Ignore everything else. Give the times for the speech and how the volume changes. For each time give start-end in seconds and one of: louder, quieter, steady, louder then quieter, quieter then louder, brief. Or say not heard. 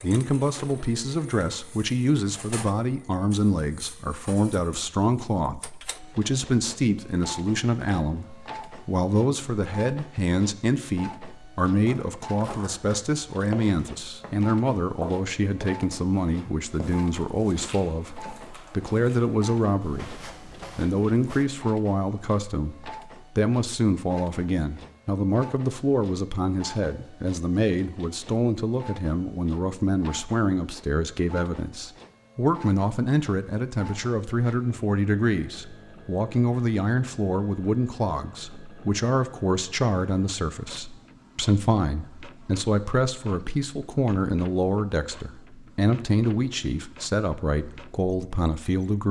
0.0-49.0 steady.